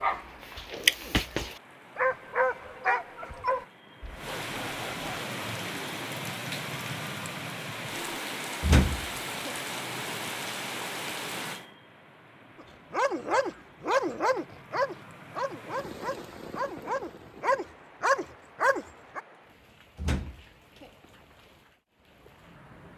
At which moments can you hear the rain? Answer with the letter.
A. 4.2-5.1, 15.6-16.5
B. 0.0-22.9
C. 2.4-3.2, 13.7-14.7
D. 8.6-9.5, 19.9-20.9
B.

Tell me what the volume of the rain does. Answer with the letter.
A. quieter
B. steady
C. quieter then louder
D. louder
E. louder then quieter
E.